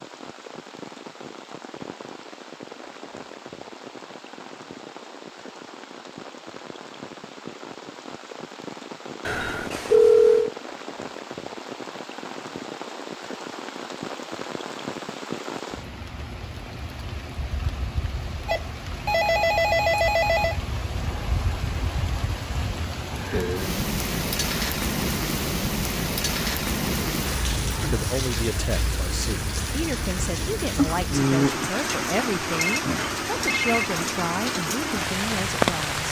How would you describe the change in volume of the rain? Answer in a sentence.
The loudness of the rain goes up.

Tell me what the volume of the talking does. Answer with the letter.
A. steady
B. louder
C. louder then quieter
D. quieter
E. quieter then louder
A.